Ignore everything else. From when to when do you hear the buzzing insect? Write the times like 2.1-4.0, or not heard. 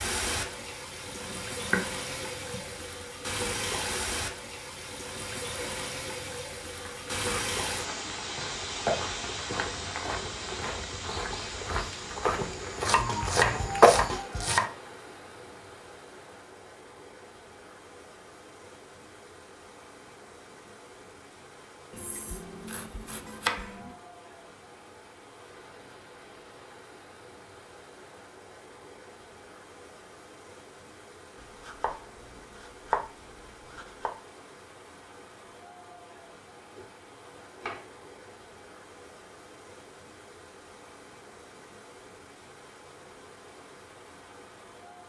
not heard.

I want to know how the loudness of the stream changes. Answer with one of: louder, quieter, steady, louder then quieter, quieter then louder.
quieter.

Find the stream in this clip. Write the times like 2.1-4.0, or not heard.
0.0-45.0.